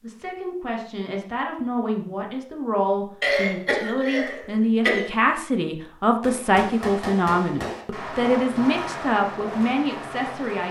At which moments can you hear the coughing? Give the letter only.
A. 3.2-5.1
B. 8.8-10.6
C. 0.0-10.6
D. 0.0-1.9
A.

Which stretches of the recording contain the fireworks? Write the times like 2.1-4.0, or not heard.
6.2-10.6.